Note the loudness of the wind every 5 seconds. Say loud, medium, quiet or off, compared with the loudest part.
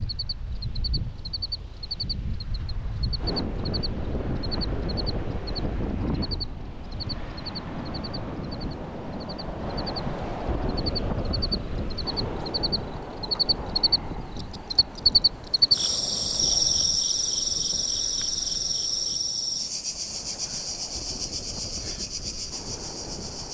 loud, loud, loud, medium, medium.